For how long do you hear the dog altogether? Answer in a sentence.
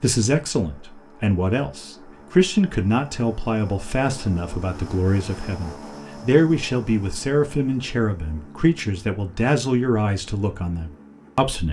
You can't hear the dog here.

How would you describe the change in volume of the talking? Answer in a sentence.
The loudness of the talking stays about the same.